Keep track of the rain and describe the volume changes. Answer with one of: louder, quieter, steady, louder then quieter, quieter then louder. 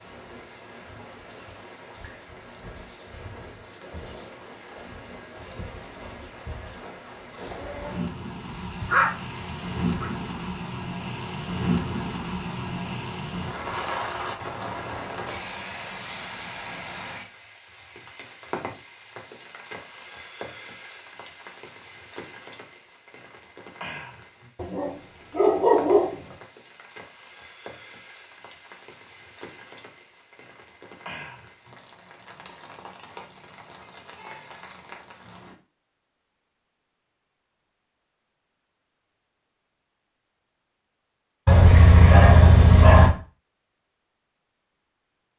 louder then quieter.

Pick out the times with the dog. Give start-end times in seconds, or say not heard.
8.4-10.1, 24.6-26.4, 41.5-43.1.